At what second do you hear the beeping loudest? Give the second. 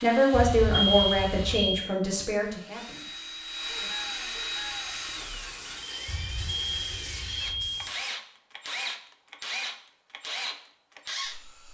1 s.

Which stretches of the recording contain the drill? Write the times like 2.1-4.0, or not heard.
0.0-11.6.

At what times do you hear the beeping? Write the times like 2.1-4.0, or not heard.
0.3-1.9, 6.0-7.9.